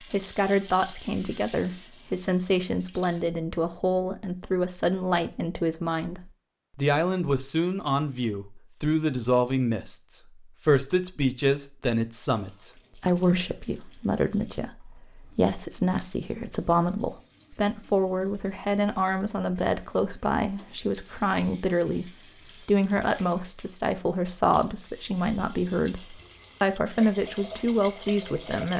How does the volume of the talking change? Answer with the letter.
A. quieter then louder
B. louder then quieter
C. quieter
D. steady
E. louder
D.